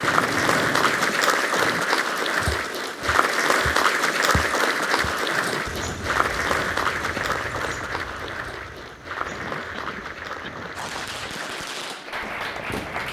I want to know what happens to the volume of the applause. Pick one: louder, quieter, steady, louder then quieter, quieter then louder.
quieter.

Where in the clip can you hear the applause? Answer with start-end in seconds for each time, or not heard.
0.0-13.0.